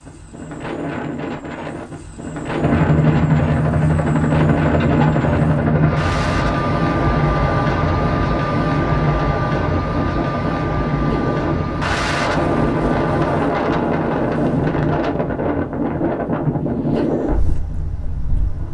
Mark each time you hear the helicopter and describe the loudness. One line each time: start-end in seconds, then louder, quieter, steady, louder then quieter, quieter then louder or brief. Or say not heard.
2.5-13.4 quieter.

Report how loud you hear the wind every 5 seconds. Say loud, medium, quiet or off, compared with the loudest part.
medium, medium, loud, loud.